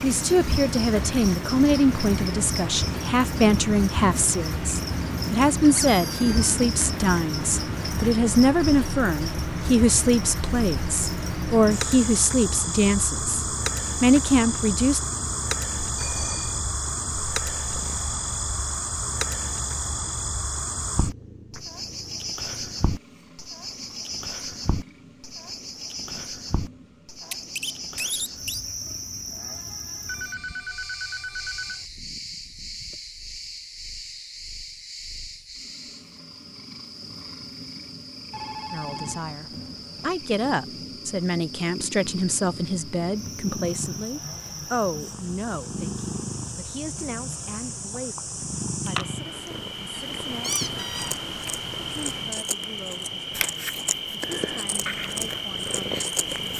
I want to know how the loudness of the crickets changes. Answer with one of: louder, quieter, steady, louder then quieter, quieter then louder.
quieter then louder.